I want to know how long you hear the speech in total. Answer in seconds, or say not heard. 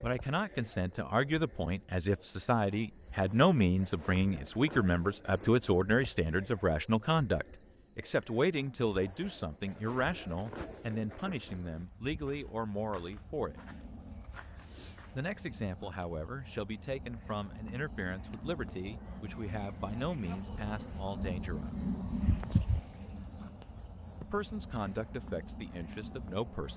23 s.